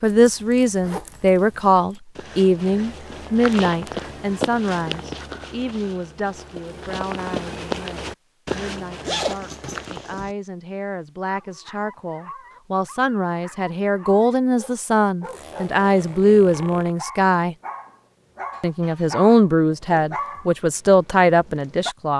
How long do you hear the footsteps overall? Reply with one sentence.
The footsteps can be heard for 8 seconds in total.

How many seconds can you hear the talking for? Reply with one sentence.
The talking can be heard for 21 seconds in total.